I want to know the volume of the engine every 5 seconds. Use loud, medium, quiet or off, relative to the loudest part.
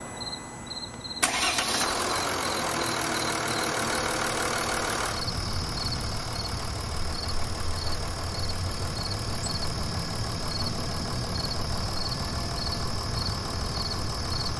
loud, medium, medium.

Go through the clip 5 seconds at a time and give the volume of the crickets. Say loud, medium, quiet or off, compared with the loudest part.
medium, loud, loud.